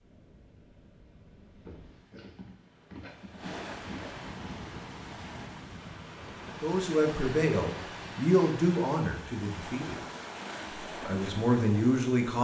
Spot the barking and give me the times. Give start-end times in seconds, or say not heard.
1.6-4.2.